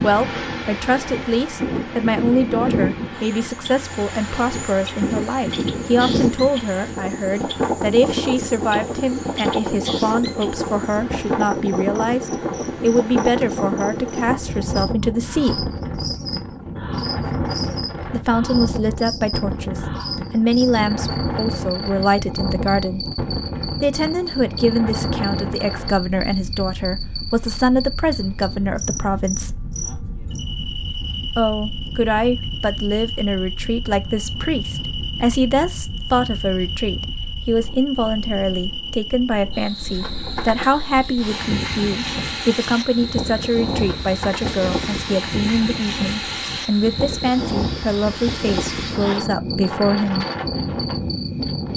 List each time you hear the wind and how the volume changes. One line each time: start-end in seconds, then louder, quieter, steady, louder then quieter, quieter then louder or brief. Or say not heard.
0.0-51.7 quieter then louder.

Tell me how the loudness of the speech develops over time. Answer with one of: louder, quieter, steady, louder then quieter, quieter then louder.
steady.